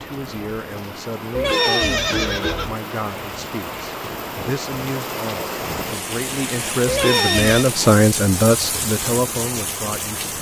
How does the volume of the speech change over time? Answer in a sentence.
The volume of the speech goes up.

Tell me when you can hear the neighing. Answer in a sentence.
The neighing can be heard from 1.3 to 2.8 s and from 6.8 to 7.7 s.